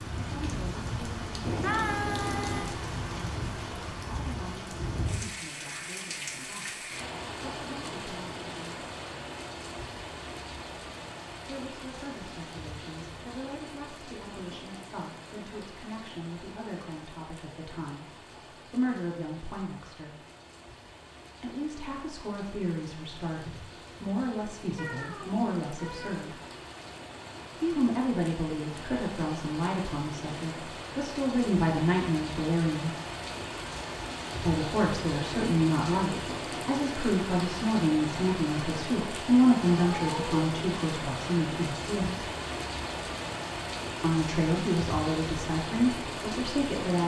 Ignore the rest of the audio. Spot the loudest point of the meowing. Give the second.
2 s.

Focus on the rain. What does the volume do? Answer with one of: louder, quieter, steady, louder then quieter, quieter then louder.
quieter then louder.